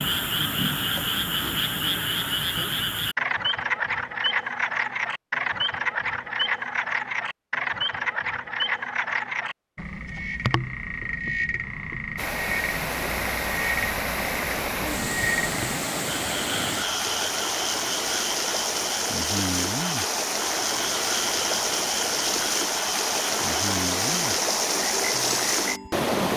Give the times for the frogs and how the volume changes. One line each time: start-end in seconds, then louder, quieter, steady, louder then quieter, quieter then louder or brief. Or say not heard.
0.0-26.1 quieter.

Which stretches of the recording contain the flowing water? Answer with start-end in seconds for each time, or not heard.
12.2-26.3.